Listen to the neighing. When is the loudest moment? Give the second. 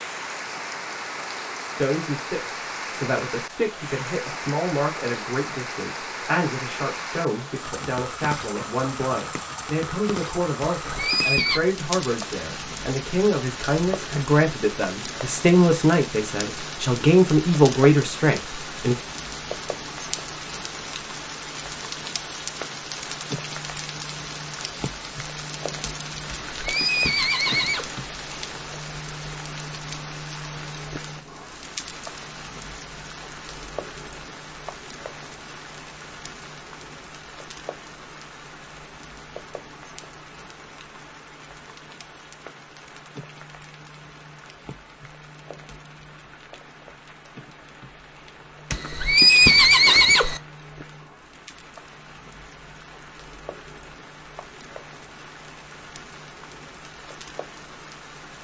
49 s.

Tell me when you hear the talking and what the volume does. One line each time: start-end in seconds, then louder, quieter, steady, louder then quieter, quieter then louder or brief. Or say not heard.
1.8-18.9 louder.